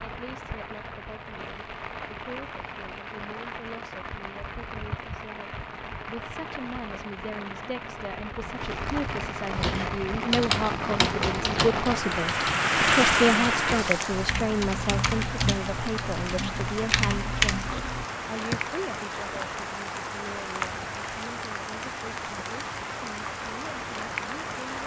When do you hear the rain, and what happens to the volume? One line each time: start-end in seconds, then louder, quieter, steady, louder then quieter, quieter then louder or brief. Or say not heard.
0.0-24.8 louder then quieter.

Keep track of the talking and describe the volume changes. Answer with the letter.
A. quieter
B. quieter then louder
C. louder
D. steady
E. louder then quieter
E.